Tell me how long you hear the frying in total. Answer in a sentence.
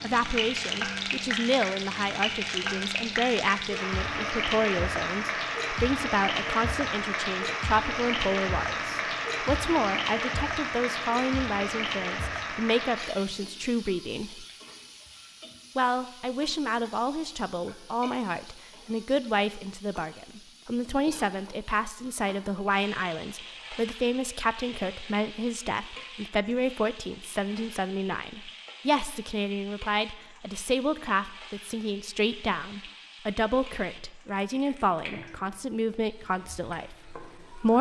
The frying can be heard for 38 seconds in total.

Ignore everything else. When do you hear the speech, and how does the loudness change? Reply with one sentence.
The speech can be heard from 0.0 to 14.4 s, at a steady volume; and from 15.8 to 37.7 s, at a steady volume.